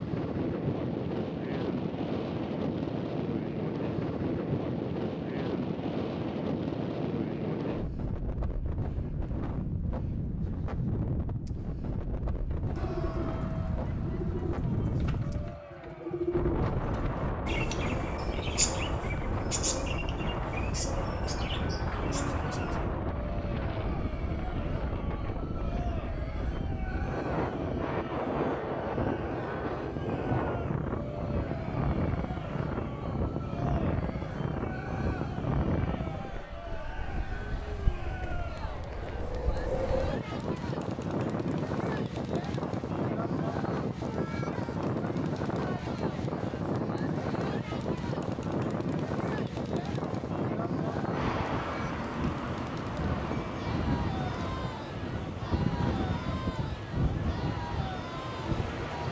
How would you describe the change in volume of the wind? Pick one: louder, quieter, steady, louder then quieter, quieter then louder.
steady.